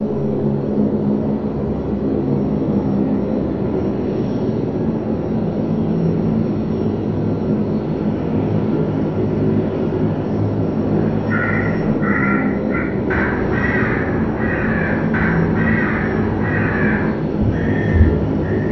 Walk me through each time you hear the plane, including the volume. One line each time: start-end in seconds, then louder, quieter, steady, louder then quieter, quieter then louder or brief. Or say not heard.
0.0-18.6 steady.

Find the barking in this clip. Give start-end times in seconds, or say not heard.
not heard.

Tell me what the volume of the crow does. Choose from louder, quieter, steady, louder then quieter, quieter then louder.
steady.